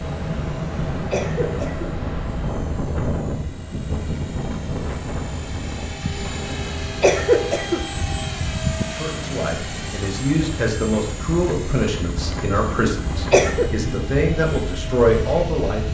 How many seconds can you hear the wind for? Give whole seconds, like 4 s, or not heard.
16 s.